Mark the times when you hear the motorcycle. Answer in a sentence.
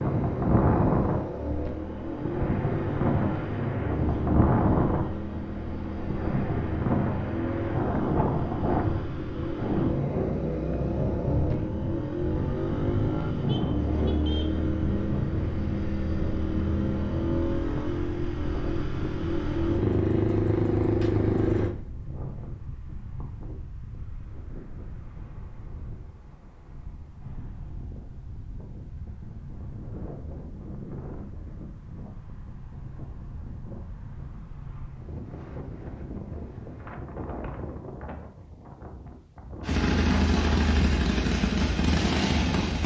The motorcycle can be heard from 0.0 to 21.7 s and from 39.6 to 42.8 s.